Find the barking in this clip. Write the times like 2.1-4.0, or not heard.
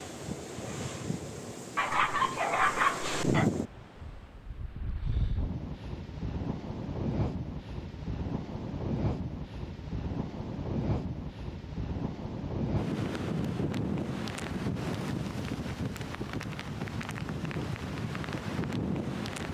1.8-3.5.